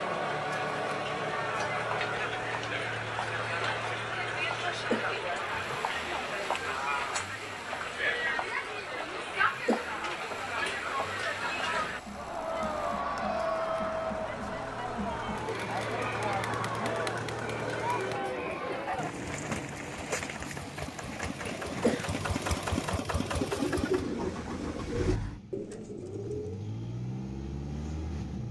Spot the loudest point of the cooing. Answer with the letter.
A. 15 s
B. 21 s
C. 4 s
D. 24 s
D.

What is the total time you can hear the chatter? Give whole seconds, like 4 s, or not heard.
19 s.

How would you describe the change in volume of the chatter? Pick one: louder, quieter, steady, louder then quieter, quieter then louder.
steady.